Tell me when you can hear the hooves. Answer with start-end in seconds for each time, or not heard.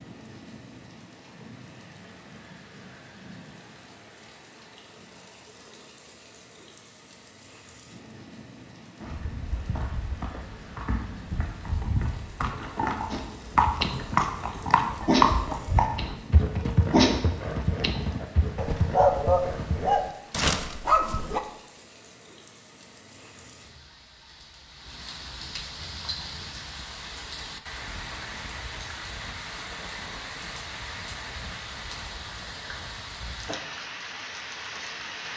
9.0-19.9.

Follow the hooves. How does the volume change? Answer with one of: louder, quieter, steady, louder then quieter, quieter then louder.
louder then quieter.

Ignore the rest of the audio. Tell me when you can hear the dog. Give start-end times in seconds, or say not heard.
13.1-14.2, 15.1-21.4.